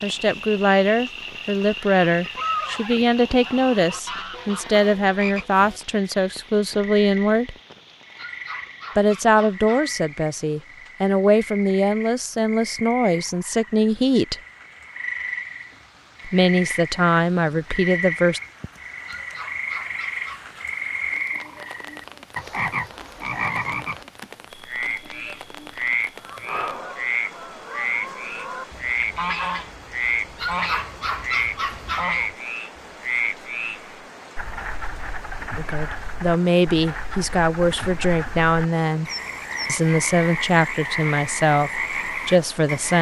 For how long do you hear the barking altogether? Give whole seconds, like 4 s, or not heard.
5 s.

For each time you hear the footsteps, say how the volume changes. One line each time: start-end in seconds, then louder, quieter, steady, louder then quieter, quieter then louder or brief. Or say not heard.
not heard.